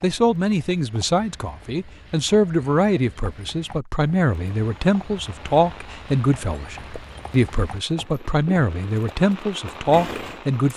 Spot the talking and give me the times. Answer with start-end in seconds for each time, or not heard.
0.0-10.7.